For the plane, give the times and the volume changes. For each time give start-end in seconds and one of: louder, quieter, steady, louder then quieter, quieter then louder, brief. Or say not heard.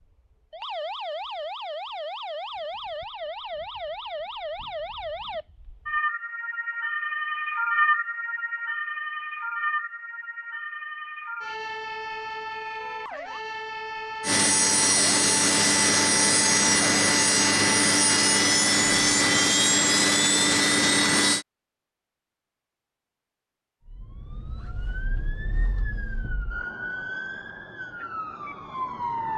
14.2-21.4 steady.